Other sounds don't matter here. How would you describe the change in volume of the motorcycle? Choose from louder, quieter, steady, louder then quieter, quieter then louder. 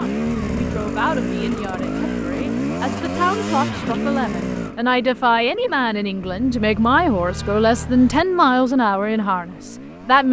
quieter.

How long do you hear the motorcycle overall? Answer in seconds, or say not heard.
10 s.